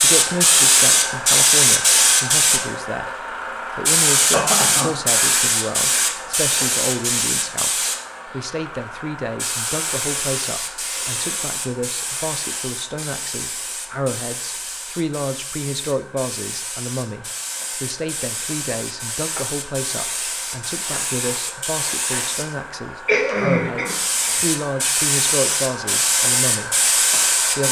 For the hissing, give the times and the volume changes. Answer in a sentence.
You can hear the hissing from 0.0 to 27.6 s, getting quieter then louder.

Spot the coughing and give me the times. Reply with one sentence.
You can hear the coughing from 4.1 to 4.9 s and from 23.1 to 24.4 s.